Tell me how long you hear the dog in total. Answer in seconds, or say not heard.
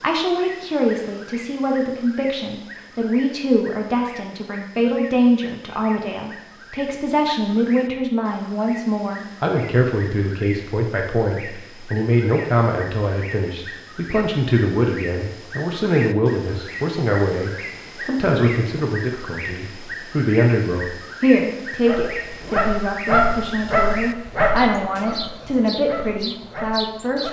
5 s.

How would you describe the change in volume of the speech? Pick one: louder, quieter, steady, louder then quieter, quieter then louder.
steady.